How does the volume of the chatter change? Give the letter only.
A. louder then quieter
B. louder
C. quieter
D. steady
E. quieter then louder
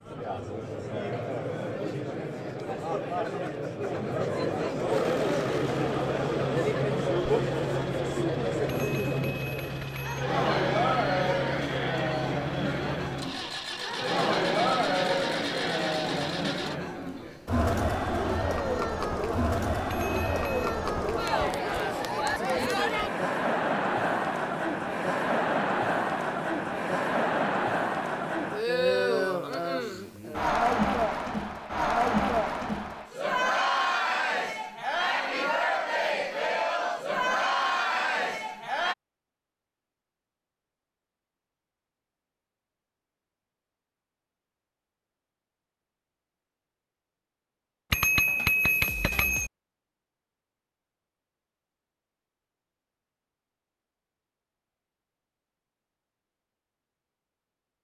D.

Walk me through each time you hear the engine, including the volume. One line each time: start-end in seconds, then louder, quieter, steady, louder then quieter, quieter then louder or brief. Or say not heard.
4.8-16.8 steady.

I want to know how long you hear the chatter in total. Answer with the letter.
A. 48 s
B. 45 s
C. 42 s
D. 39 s
D.